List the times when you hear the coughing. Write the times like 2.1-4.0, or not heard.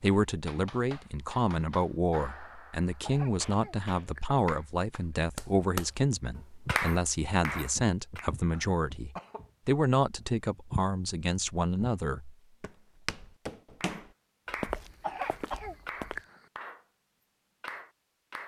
3.0-4.4, 8.5-9.5, 14.8-16.4.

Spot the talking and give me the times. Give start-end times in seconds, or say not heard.
0.0-12.3.